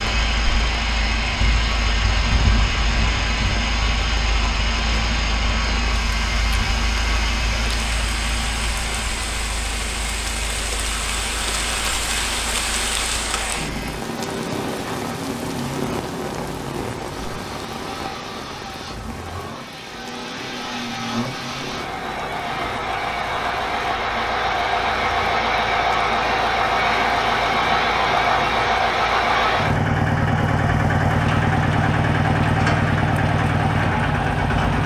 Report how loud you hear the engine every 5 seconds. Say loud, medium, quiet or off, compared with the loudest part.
medium, medium, quiet, quiet, medium, loud, loud.